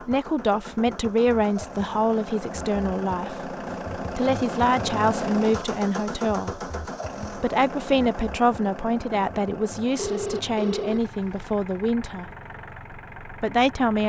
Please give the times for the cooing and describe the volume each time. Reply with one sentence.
The cooing can't be heard in this clip.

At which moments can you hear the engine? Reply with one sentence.
The engine can be heard from 0.0 to 14.0 s.